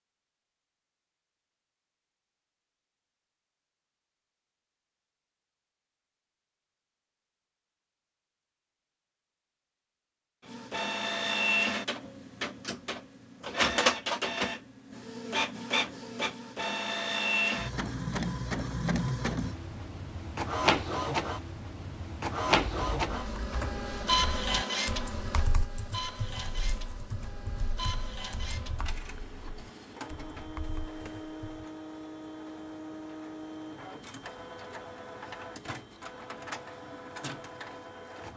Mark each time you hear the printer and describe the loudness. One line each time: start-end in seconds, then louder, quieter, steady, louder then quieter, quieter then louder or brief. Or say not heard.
10.4-38.3 quieter.